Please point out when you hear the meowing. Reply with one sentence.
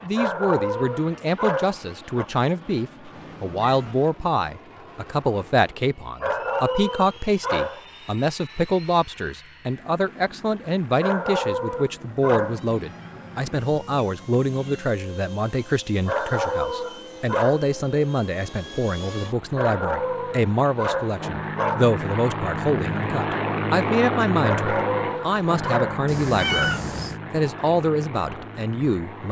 You can hear the meowing from 3.1 to 4.0 s, from 12.2 to 14.9 s and from 26.1 to 27.2 s.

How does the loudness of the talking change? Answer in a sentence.
The volume of the talking stays about the same.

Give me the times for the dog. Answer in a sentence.
You can hear the dog from 0.1 to 2.2 s, from 6.2 to 7.8 s, from 11.0 to 12.6 s, from 16.1 to 17.6 s, from 19.6 to 21.9 s and from 24.4 to 26.0 s.